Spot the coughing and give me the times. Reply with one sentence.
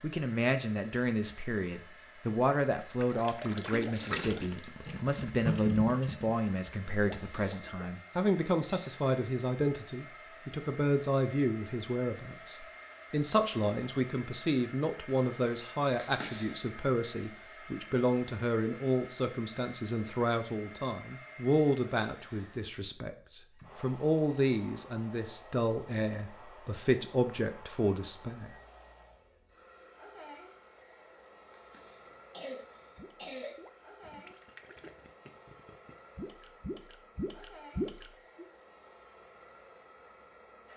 You can hear the coughing from 7.2 to 7.7 s, from 15.9 to 16.6 s and from 31.7 to 33.5 s.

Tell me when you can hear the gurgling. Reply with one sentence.
You can hear the gurgling from 3.0 to 7.9 s and from 33.0 to 38.5 s.